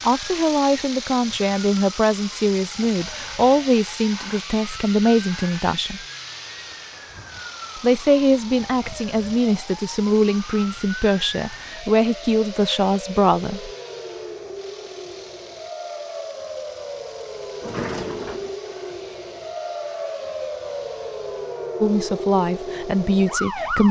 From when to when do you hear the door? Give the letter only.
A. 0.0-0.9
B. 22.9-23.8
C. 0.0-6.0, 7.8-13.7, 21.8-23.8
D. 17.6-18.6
D.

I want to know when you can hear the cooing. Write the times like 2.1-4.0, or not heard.
not heard.